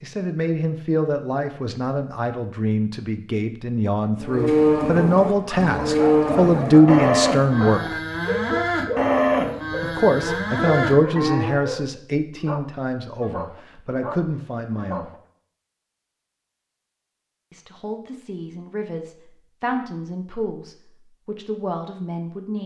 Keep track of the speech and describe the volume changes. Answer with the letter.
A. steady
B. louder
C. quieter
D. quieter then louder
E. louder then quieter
E.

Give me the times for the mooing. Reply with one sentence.
The mooing can be heard from 4.2 to 11.6 s.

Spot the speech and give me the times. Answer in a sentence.
You can hear the speech from 0.0 to 8.0 s, from 9.8 to 15.1 s and from 17.5 to 22.6 s.